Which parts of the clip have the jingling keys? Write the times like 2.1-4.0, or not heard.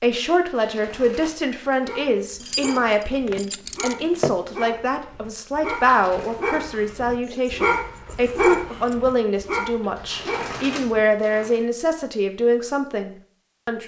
2.4-4.3, 7.2-8.9.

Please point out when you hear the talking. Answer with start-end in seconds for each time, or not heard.
0.0-13.8.